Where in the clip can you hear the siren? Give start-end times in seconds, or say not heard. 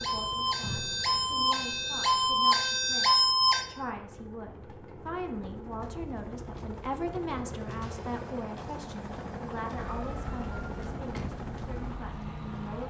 0.0-3.6, 9.8-12.8.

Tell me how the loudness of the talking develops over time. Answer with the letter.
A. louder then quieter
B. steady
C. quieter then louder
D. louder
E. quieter
A.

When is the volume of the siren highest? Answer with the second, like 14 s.
3 s.